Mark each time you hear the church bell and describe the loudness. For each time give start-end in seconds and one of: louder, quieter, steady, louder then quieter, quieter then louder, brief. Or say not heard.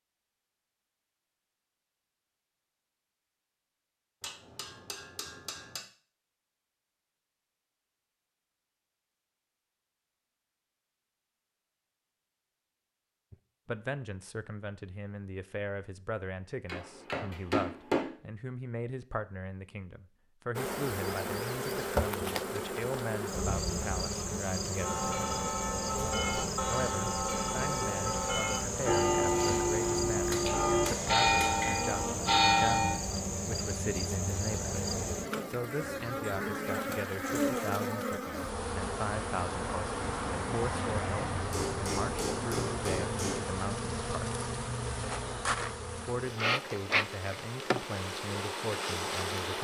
24.8-33.0 louder.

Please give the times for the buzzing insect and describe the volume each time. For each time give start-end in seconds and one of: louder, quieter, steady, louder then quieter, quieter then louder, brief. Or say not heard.
20.6-49.5 steady.